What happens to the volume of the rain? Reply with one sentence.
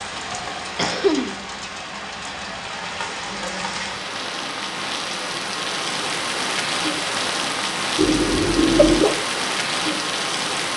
The volume of the rain goes up.